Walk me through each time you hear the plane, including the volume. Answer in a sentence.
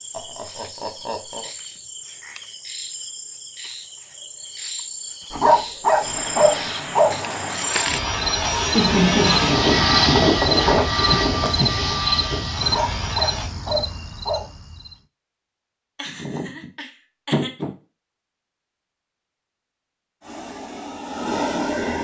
The plane can be heard from 6.0 to 13.5 s, getting louder then quieter; and briefly from 20.2 to 21.9 s.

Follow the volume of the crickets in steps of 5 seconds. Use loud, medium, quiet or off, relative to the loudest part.
medium, loud, loud, off, off.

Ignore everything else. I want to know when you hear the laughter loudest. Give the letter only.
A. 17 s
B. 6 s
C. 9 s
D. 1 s
C.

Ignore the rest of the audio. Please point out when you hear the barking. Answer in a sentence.
You can hear the barking from 5.3 to 7.2 s and from 12.6 to 14.4 s.